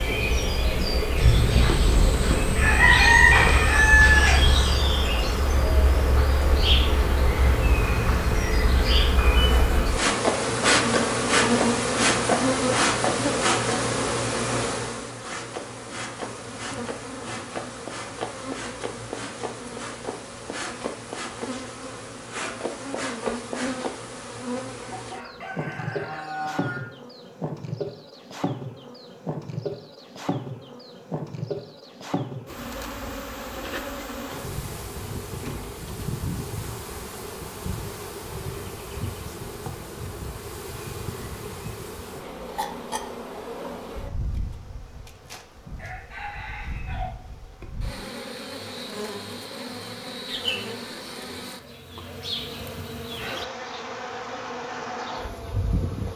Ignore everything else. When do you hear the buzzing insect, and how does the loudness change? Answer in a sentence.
The buzzing insect can be heard from 0.0 to 56.1 s, getting quieter.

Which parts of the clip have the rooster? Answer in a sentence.
The rooster can be heard from 1.1 to 4.8 s, from 24.9 to 26.8 s and from 45.1 to 47.1 s.